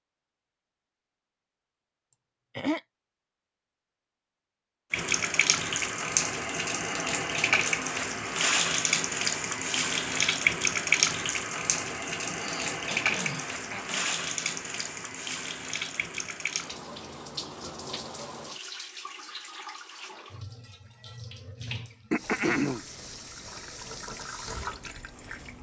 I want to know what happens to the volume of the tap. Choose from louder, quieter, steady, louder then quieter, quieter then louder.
quieter.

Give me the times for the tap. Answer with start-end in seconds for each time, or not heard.
4.9-25.5.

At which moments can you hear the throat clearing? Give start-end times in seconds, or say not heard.
2.1-2.8, 12.2-14.1, 22.1-22.9.